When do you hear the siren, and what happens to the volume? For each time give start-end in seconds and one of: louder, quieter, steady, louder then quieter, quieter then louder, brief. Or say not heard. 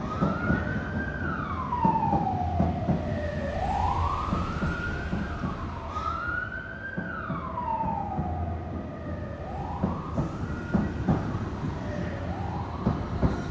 0.0-13.3 quieter.